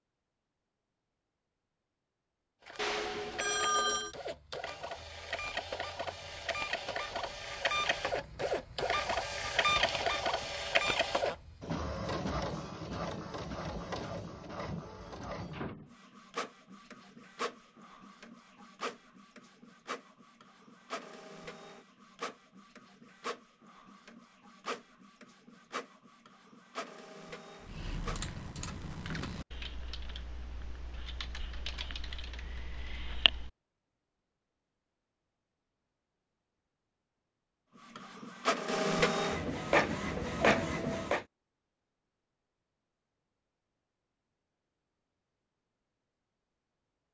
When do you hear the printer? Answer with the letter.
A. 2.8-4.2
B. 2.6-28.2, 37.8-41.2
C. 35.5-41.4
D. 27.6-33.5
B.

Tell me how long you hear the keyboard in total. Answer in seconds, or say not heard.
6 s.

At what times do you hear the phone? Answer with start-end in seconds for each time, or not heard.
2.8-4.2.